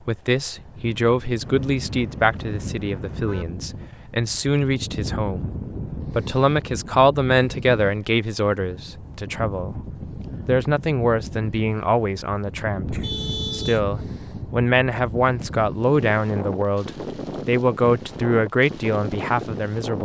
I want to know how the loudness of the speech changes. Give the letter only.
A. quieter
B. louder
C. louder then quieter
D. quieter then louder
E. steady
E.